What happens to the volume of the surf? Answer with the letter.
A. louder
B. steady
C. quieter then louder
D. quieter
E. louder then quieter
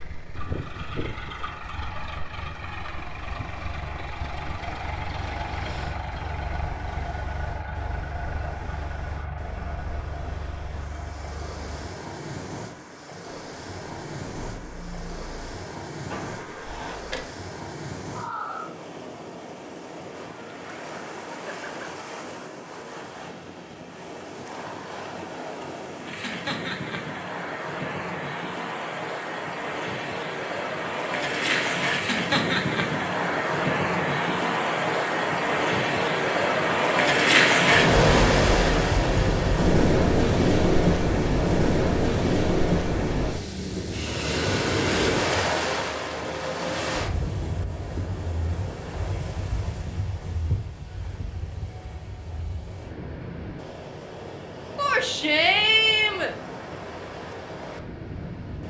E.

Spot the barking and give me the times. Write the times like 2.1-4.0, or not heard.
not heard.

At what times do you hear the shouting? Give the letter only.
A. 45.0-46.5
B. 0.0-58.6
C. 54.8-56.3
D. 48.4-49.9
C.